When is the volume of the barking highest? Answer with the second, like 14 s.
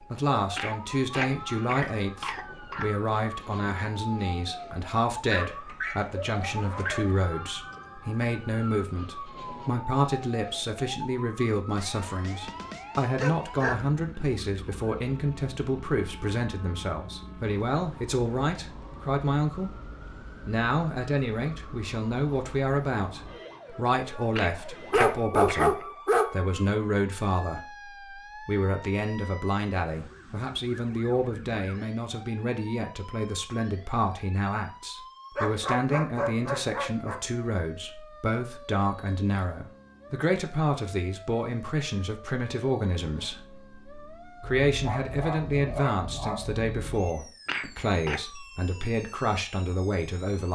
26 s.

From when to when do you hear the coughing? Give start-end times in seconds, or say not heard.
0.6-2.9, 24.4-25.9, 47.5-48.2.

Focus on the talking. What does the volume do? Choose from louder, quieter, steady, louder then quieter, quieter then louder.
steady.